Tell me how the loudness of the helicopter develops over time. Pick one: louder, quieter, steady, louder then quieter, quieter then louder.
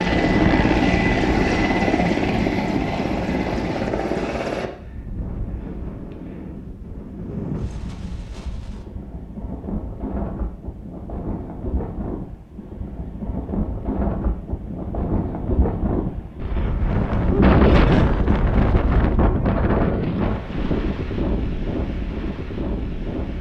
quieter.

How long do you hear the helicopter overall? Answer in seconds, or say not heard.
5 s.